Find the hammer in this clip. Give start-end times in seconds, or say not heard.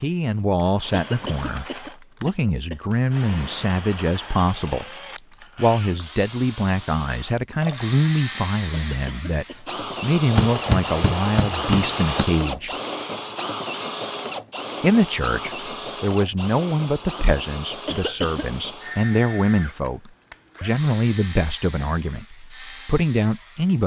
10.3-12.2.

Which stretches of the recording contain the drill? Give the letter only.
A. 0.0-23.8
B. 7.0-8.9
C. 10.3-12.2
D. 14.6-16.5
A.